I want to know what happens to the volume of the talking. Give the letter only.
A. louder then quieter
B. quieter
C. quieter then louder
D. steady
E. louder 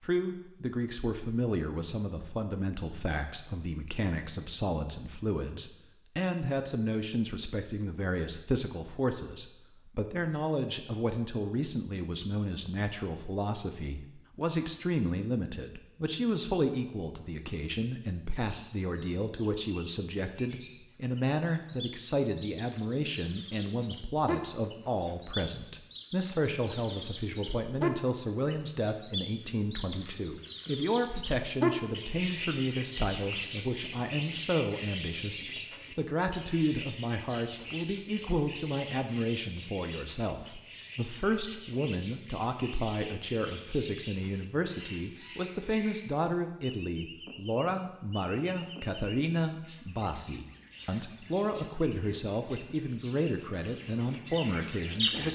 D.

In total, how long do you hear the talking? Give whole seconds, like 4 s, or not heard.
55 s.